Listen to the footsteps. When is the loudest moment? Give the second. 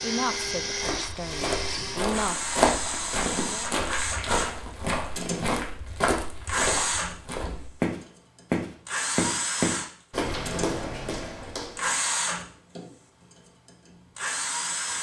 3 s.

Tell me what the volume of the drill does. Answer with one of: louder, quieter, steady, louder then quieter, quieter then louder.
steady.